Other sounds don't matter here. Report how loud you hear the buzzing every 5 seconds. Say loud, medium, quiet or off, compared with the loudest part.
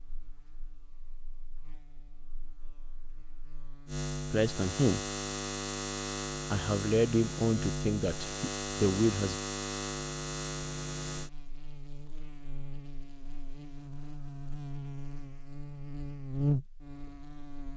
medium, loud, medium, loud.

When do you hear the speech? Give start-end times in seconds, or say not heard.
4.3-5.0, 6.5-9.3.